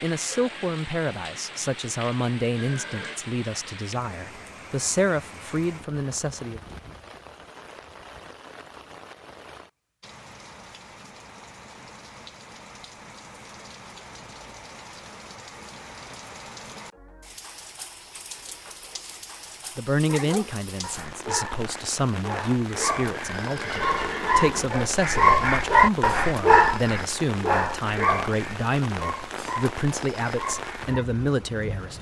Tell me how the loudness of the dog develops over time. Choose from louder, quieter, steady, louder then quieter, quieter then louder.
louder then quieter.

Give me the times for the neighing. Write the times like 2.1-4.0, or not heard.
2.5-3.2, 23.1-24.7.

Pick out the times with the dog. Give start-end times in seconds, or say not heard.
20.1-31.1.